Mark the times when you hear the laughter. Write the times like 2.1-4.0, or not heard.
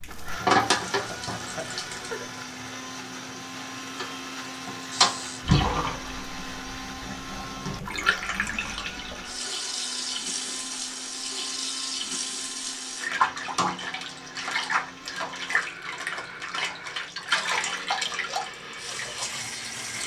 1.1-2.2.